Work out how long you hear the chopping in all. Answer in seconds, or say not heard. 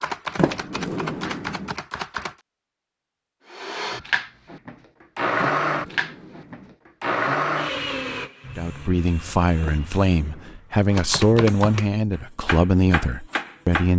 5 s.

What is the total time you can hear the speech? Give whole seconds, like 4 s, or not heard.
5 s.